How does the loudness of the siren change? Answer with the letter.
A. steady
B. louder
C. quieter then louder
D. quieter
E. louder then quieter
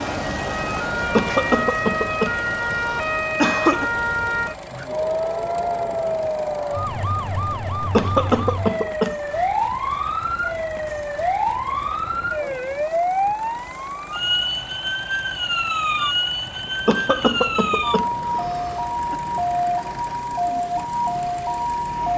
A.